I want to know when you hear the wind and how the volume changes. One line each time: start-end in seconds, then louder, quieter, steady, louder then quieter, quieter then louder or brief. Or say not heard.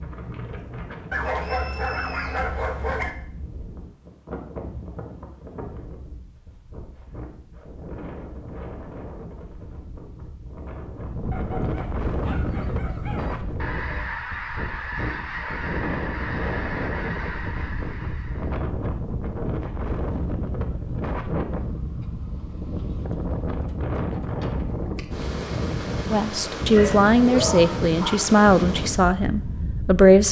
0.0-30.2 louder.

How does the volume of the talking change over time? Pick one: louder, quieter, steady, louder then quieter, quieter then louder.
quieter.